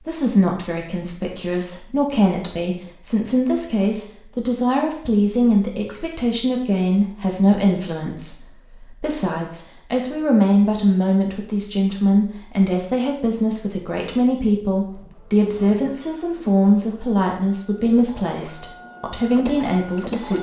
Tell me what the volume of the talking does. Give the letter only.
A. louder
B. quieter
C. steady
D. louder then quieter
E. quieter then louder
C.